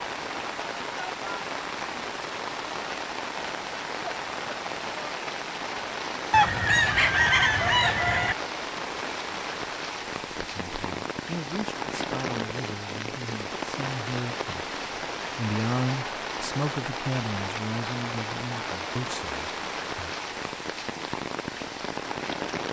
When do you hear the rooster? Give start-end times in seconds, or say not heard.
6.3-8.3.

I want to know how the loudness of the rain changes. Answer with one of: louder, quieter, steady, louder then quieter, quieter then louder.
steady.